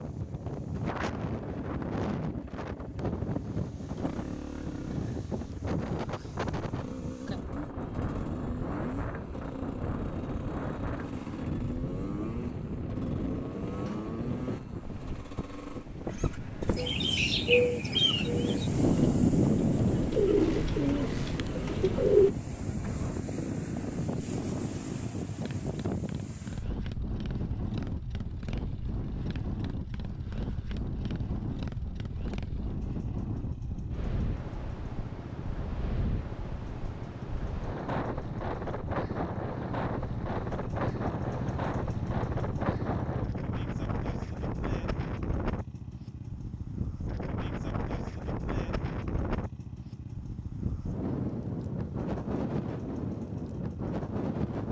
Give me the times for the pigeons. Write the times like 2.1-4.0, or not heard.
16.8-22.3.